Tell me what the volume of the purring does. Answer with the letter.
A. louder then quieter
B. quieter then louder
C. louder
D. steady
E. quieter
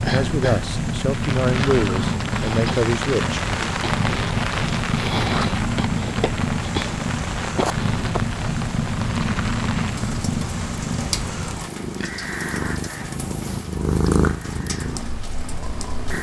D.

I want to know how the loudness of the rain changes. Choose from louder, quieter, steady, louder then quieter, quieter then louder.
quieter.